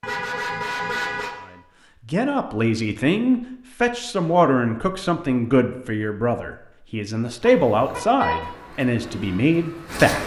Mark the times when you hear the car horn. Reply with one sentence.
The car horn can be heard from 0.0 to 1.4 s and from 7.5 to 8.5 s.